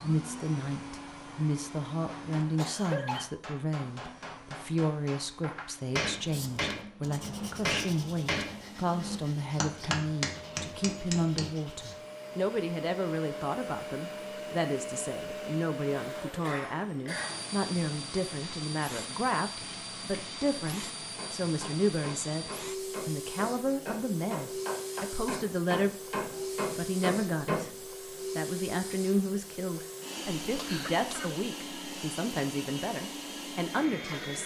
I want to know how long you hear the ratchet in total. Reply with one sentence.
The ratchet can't be heard in this clip.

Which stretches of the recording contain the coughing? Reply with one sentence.
The coughing can be heard from 2.5 to 3.3 s, from 16.4 to 17.5 s and from 30.5 to 31.4 s.